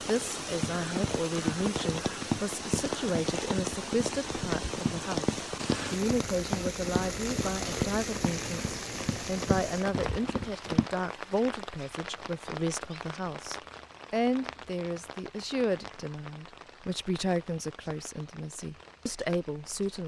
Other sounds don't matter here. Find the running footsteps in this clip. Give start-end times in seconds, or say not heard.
0.5-10.9.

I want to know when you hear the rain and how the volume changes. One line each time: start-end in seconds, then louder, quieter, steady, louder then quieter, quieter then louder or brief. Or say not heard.
0.0-20.0 quieter.